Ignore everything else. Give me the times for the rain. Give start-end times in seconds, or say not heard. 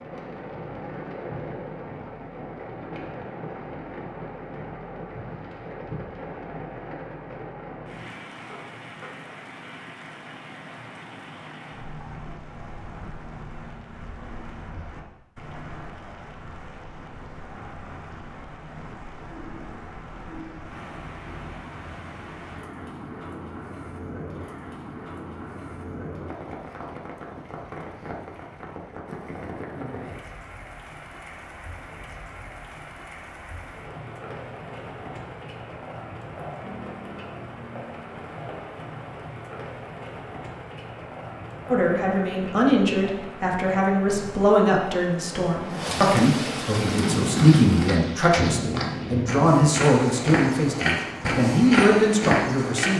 0.0-52.9.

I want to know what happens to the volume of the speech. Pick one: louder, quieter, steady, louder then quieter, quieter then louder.
steady.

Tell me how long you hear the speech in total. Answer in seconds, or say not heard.
11 s.